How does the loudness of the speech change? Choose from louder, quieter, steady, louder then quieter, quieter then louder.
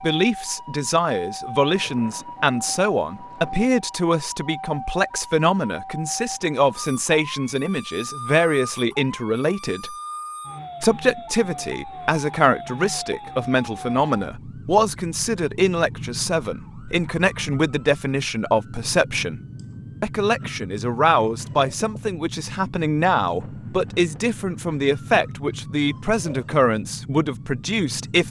steady.